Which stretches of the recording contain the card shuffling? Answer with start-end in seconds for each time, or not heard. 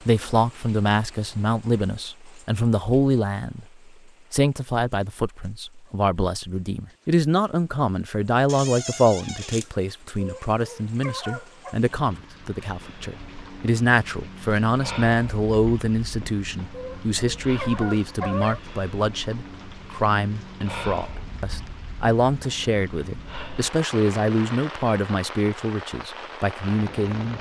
not heard.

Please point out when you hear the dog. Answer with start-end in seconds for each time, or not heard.
10.2-11.8, 16.7-18.6.